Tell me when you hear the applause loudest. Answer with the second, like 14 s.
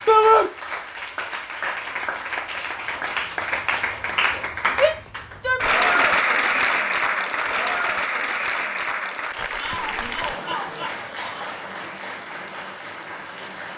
6 s.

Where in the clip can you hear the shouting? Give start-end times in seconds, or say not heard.
0.1-0.5, 4.7-6.7, 9.6-11.6.